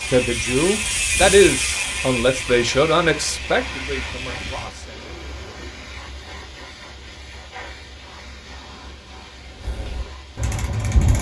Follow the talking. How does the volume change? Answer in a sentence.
The loudness of the talking goes down.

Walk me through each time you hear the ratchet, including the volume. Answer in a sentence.
The ratchet can be heard from 0.0 to 4.7 s, getting quieter; and briefly from 9.6 to 11.1 s.